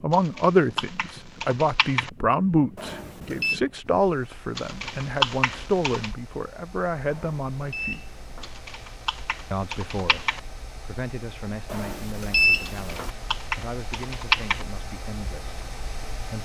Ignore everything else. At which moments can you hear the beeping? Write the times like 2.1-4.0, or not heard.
2.8-3.6, 7.0-8.5, 11.7-13.1.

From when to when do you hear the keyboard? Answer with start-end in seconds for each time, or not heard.
0.1-2.1, 4.5-6.1, 8.4-10.4, 12.7-14.7.